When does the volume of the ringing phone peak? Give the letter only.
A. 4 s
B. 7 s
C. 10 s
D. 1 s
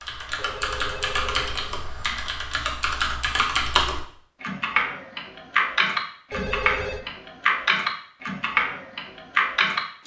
B.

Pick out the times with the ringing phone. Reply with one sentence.
You can hear the ringing phone from 0.3 to 2.2 s and from 6.3 to 7.0 s.